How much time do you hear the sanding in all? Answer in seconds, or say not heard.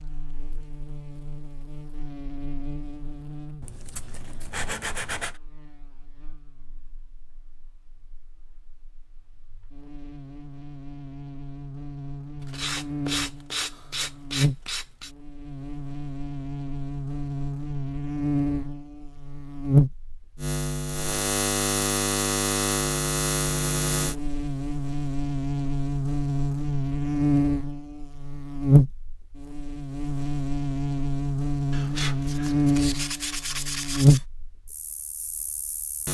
7 s.